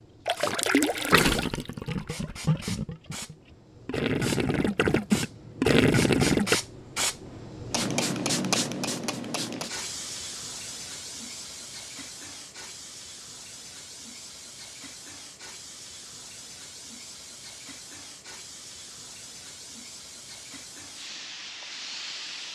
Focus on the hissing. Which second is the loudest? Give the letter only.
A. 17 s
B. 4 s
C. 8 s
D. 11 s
C.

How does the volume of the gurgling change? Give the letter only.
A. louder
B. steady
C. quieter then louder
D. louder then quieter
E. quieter
C.